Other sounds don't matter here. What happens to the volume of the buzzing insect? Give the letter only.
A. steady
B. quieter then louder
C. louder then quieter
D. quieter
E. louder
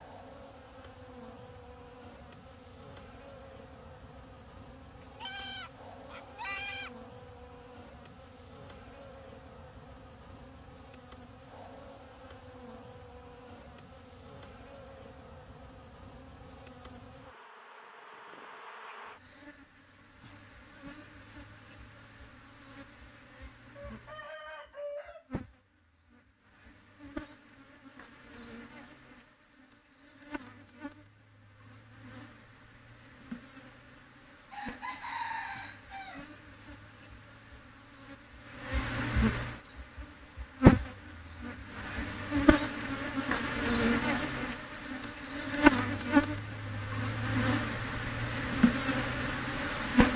E.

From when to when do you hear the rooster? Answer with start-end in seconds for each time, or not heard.
5.0-6.9, 23.8-25.2, 34.5-36.2.